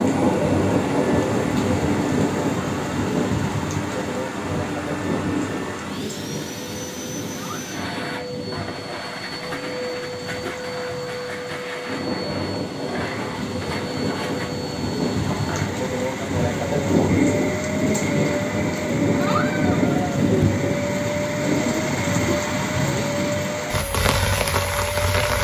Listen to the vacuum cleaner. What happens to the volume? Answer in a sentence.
The loudness of the vacuum cleaner stays about the same.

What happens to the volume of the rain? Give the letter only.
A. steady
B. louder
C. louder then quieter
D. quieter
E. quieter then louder
E.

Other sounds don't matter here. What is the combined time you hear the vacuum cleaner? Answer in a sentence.
The vacuum cleaner can be heard for 25 seconds in total.